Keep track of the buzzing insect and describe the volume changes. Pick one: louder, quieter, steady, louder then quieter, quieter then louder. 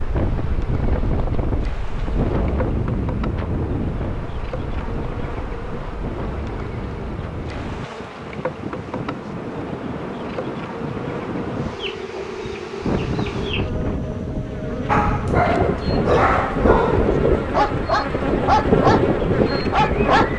louder.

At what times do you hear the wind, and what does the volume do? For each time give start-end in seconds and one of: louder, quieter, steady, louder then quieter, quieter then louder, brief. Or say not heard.
0.0-20.3 quieter then louder.